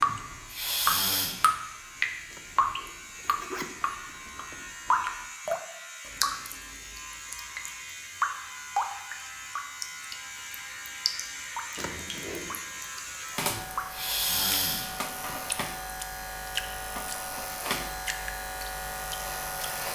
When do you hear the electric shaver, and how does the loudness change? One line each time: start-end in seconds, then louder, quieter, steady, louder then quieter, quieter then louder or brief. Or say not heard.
0.0-19.9 louder.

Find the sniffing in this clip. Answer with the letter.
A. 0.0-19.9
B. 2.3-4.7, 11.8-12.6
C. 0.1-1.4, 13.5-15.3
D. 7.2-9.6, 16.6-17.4
C.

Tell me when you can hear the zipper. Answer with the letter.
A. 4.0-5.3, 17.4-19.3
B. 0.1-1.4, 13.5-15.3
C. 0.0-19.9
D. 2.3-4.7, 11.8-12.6
D.